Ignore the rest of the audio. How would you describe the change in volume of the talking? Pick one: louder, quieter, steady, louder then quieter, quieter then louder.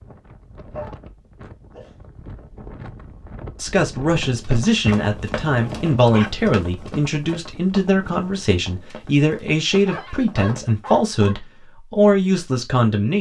steady.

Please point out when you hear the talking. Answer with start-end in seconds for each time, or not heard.
3.6-13.1.